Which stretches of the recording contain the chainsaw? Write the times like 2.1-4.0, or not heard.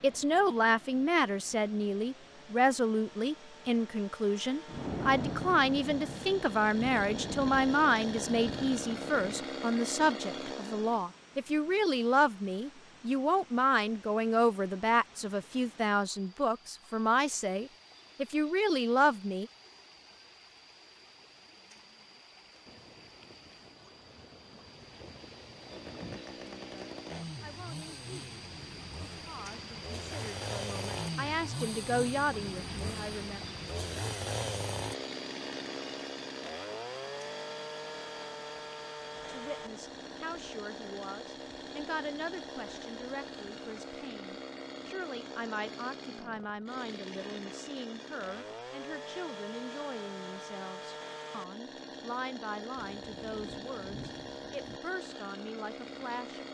0.0-11.1, 25.5-56.4.